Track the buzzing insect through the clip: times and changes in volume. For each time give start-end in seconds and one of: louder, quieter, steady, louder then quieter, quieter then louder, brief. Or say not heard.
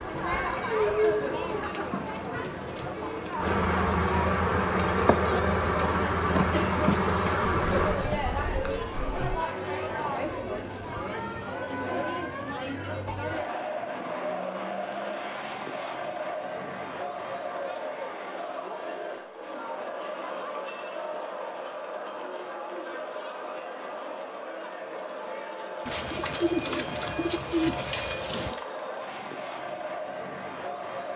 0.0-8.2 louder.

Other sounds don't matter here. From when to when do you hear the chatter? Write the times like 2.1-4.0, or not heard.
0.0-31.1.